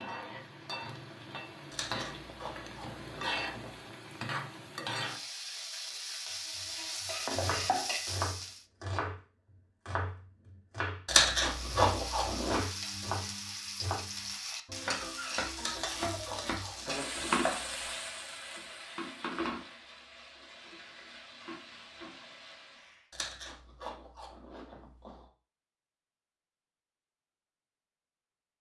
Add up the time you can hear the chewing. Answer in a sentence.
You can hear the chewing for 8 seconds altogether.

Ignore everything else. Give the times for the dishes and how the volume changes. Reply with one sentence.
You can't hear the dishes here.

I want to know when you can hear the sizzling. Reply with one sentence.
The sizzling can be heard from 0.0 to 8.6 s and from 11.4 to 23.1 s.